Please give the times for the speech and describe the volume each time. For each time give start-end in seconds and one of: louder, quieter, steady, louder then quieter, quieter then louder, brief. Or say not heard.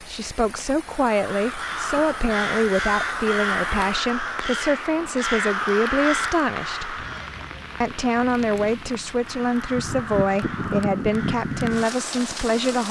0.0-7.0 steady
7.8-12.8 steady.